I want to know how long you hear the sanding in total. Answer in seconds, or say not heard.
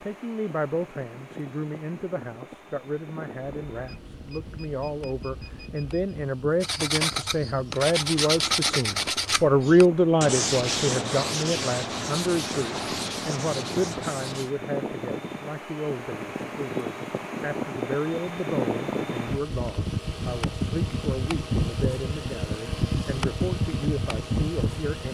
8 s.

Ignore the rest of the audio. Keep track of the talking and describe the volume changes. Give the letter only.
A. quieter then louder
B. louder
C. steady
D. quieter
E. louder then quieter
E.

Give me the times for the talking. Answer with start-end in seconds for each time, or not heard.
0.0-25.0.